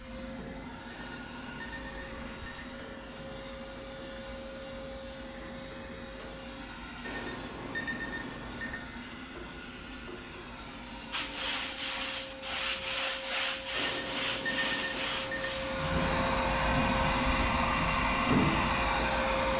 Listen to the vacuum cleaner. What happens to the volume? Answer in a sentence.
The volume of the vacuum cleaner goes up.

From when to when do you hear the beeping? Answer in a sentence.
The beeping can be heard from 0.8 to 2.6 s, from 7.0 to 8.8 s and from 13.8 to 15.5 s.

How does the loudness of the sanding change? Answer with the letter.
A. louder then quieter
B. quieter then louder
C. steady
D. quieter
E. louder
C.